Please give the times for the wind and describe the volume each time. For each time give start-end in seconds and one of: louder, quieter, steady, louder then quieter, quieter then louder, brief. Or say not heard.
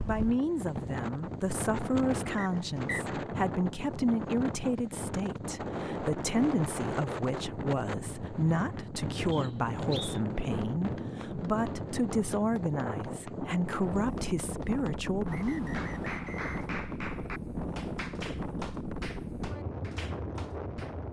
0.0-21.0 steady.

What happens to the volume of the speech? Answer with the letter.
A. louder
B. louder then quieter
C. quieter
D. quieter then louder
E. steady
E.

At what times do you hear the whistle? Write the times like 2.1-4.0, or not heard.
2.4-3.1, 9.3-10.2, 15.2-16.7.